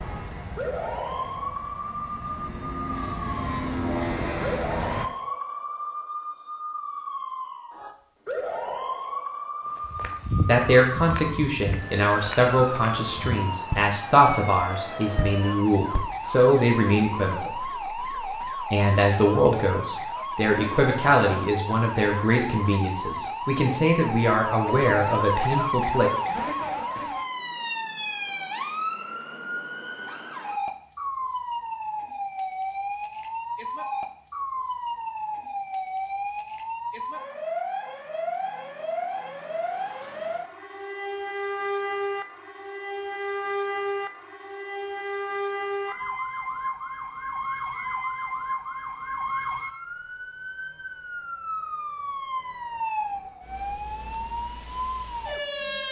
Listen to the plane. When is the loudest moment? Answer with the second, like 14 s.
4 s.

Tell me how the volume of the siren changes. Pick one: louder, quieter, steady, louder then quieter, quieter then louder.
steady.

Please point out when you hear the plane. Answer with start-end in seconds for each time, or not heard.
0.0-5.1.